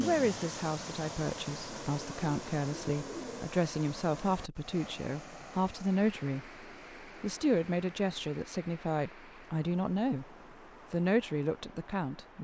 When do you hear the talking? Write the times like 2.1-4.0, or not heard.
0.0-6.5, 7.2-10.2, 10.9-12.3.